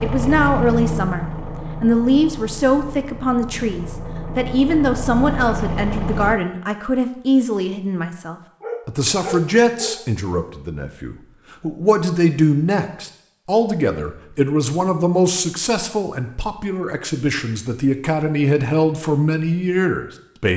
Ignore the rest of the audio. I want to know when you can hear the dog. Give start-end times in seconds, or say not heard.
8.6-10.0.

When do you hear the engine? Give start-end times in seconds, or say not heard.
0.0-6.3.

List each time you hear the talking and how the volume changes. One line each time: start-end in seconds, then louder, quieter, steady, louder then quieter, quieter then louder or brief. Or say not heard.
0.0-20.5 steady.